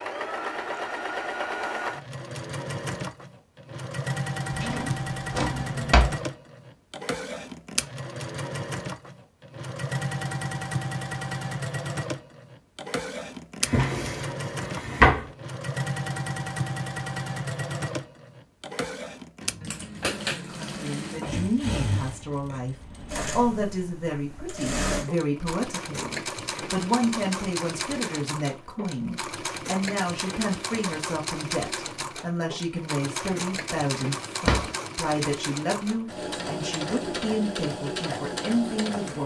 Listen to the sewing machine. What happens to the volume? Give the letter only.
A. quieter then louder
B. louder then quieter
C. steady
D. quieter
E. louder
C.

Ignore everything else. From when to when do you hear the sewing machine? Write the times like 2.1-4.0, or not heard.
0.0-39.2.